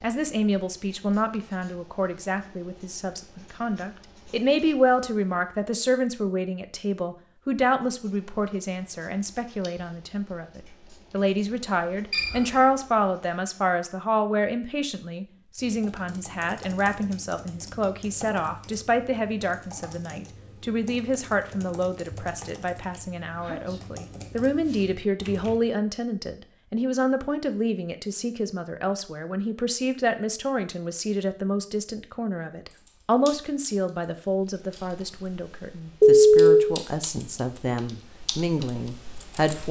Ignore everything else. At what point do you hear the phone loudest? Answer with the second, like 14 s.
36 s.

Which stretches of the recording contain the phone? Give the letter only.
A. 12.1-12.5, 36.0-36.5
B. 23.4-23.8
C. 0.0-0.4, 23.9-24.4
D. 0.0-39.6
A.